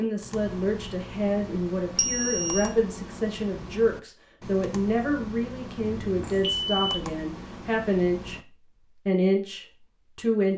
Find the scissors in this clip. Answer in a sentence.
The scissors can't be heard in this clip.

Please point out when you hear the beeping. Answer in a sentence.
The beeping can be heard from 1.9 to 2.7 s and from 5.8 to 7.0 s.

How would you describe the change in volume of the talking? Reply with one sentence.
The loudness of the talking stays about the same.